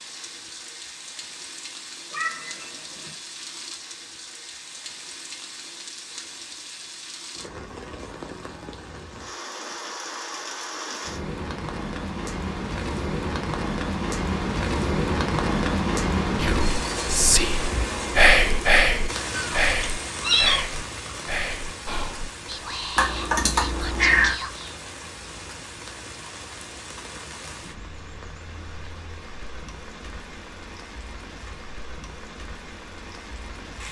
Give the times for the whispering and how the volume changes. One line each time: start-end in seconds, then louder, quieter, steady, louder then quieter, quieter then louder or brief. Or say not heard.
16.4-24.8 quieter.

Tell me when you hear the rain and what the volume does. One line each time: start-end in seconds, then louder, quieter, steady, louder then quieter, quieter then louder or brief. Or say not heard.
0.0-33.8 louder then quieter.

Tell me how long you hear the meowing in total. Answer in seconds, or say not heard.
4 s.